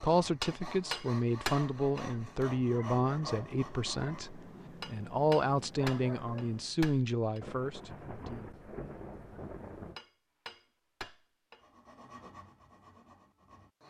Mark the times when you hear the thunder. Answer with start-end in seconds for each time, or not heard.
7.4-10.0.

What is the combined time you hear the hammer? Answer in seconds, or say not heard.
6 s.